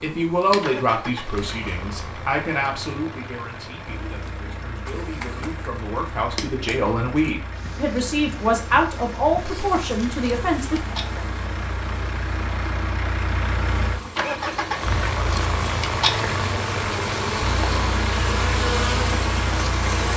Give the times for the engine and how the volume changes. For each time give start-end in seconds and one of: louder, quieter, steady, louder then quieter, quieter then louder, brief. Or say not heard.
0.0-20.1 louder.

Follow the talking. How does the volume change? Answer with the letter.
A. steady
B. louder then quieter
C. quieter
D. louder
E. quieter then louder
E.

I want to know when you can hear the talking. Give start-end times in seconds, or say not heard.
0.0-10.8.